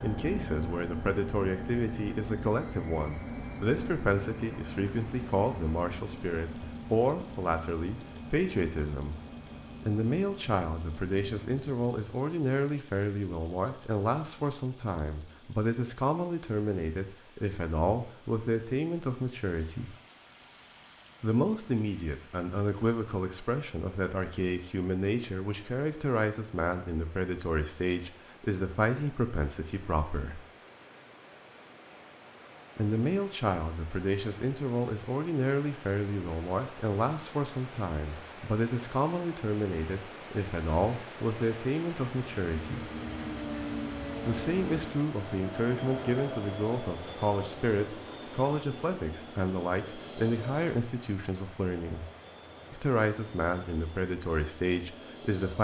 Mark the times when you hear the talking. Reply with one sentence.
You can hear the talking from 0.0 to 9.2 s, from 9.8 to 19.9 s, from 21.2 to 30.4 s, from 32.8 to 42.9 s, from 44.2 to 52.0 s and from 52.7 to 55.5 s.